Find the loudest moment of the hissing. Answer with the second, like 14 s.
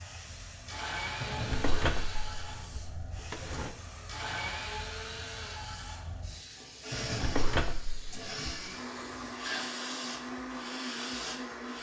10 s.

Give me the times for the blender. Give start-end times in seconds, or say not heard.
0.0-11.7.